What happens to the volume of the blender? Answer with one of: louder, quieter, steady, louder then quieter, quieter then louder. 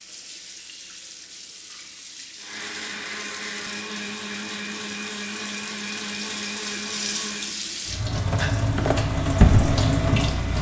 steady.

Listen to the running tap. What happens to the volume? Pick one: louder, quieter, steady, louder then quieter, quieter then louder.
louder.